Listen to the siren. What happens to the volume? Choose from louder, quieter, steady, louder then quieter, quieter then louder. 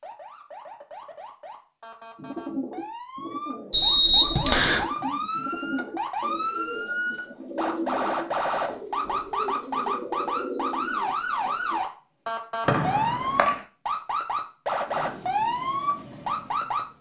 louder.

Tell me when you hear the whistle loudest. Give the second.
4 s.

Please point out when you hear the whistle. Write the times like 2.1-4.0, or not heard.
3.7-4.8, 12.7-13.6.